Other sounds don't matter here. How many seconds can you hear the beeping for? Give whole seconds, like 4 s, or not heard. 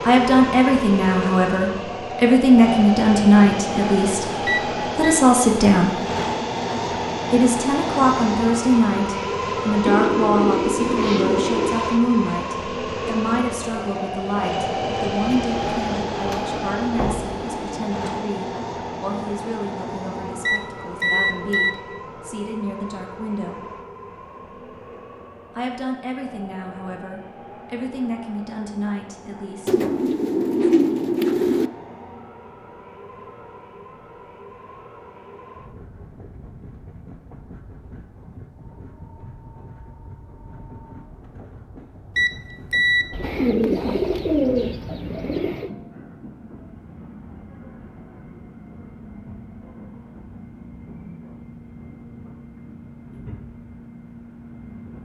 3 s.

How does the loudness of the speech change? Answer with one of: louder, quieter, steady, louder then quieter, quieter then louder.
quieter.